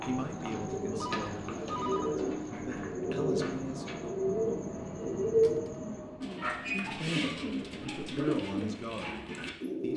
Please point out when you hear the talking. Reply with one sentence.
The talking can be heard from 0.0 to 4.0 s and from 6.7 to 9.9 s.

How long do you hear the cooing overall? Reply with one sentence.
You can hear the cooing for 10 seconds altogether.